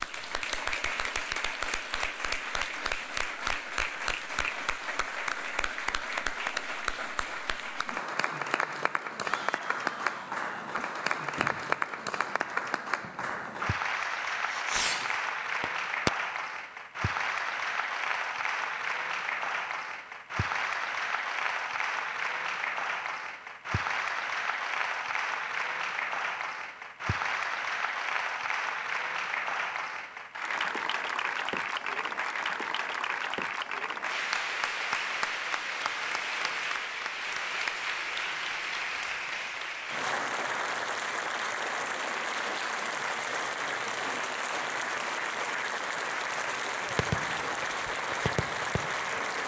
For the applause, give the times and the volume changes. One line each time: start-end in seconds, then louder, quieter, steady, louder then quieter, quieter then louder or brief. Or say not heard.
0.0-49.4 steady.